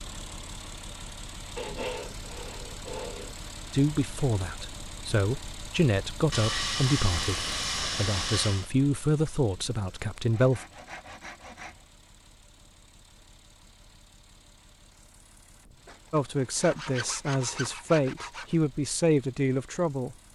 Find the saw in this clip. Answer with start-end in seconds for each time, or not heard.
1.6-3.4, 6.3-8.7, 10.3-11.9, 15.8-18.6.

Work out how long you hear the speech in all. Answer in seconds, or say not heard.
11 s.